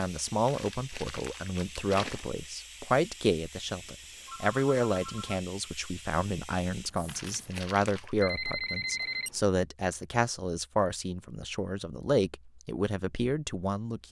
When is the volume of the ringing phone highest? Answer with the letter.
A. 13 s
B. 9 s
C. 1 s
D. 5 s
B.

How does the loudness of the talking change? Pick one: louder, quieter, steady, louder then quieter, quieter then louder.
steady.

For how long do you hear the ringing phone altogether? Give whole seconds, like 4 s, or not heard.
3 s.